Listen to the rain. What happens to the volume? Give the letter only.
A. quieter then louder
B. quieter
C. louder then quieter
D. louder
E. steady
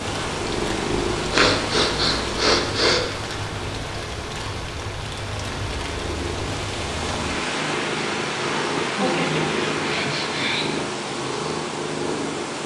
E.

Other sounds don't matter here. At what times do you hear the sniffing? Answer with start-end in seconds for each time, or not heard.
1.3-3.0, 8.9-10.8.